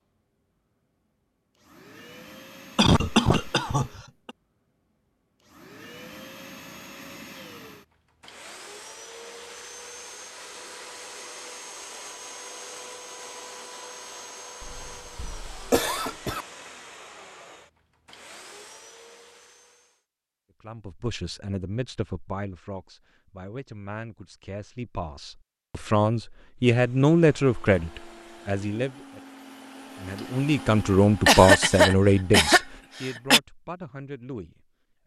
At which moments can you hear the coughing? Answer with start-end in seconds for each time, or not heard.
2.8-4.3, 14.6-16.4, 31.2-33.4.